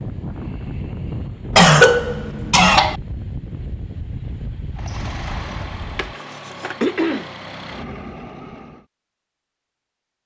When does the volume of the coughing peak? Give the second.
2 s.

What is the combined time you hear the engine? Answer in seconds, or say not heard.
4 s.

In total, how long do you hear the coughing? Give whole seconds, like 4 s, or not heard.
3 s.